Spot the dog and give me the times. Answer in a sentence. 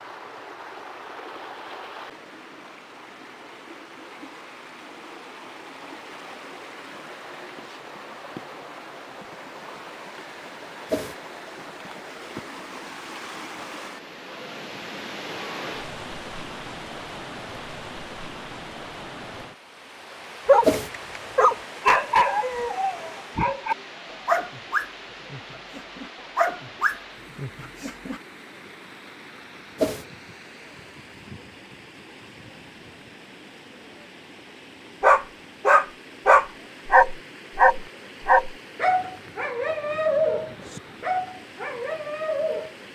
You can hear the dog from 20.4 to 28.2 s and from 35.0 to 42.7 s.